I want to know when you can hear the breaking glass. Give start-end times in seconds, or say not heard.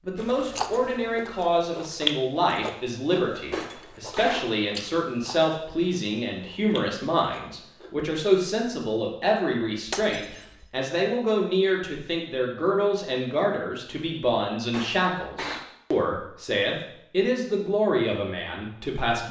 3.5-4.5, 9.8-10.7, 14.7-15.7.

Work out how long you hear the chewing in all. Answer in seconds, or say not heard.
8 s.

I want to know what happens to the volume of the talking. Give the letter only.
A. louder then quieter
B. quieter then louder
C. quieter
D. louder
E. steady
E.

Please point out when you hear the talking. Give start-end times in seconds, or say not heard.
0.1-19.2.